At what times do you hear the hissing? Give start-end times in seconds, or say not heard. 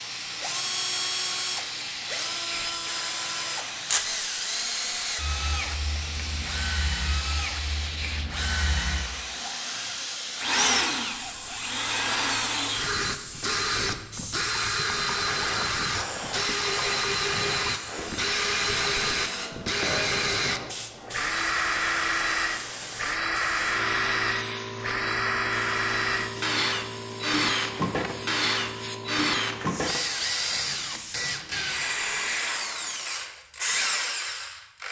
0.0-31.7.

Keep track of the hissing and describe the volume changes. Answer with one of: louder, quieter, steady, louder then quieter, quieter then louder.
steady.